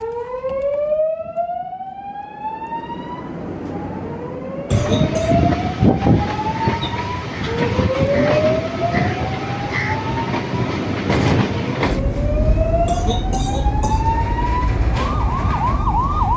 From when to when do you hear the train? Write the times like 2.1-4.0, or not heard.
4.7-16.3.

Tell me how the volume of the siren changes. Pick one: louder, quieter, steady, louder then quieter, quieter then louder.
steady.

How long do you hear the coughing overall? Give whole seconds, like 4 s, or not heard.
2 s.